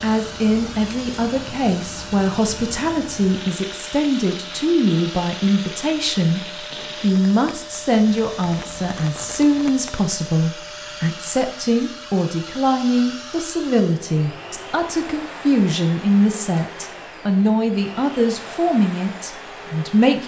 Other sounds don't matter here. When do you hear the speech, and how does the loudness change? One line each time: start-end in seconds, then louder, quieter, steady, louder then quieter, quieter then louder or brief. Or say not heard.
0.0-20.2 steady.